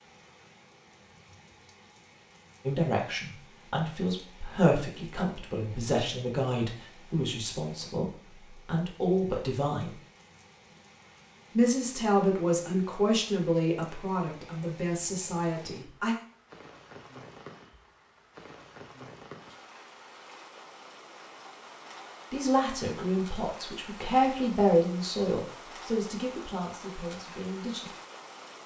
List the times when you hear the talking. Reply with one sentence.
The talking can be heard from 2.6 to 9.9 s, from 11.6 to 16.1 s and from 22.3 to 27.9 s.